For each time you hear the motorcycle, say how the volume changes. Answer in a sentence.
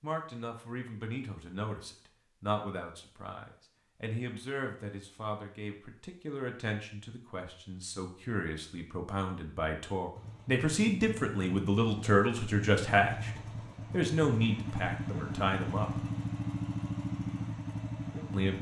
You can hear the motorcycle from 10.2 to 18.5 s, getting louder.